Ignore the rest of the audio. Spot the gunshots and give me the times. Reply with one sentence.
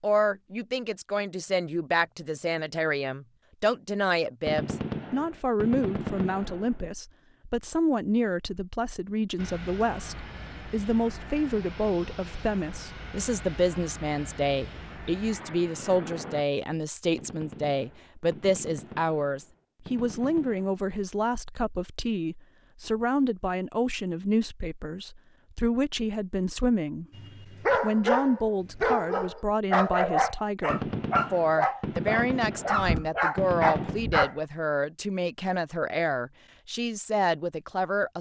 You can hear the gunshots from 4.5 to 6.9 s, from 17.1 to 20.8 s and from 30.7 to 34.1 s.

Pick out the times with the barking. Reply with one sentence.
You can hear the barking from 27.1 to 34.4 s.